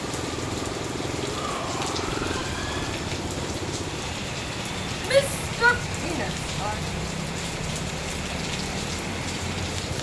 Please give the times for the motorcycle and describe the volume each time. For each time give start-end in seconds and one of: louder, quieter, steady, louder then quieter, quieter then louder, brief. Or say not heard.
0.0-9.9 steady.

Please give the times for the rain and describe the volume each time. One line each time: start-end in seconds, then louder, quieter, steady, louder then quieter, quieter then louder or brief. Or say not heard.
0.0-9.9 steady.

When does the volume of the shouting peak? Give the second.
5 s.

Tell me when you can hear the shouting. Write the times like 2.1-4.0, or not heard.
1.2-3.0, 5.0-6.8.